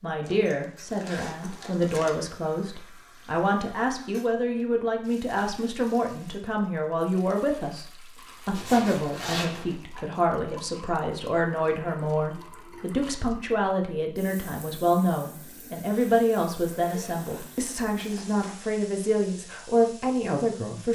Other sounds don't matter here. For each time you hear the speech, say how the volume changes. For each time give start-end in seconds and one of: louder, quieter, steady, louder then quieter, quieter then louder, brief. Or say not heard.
0.0-20.9 steady.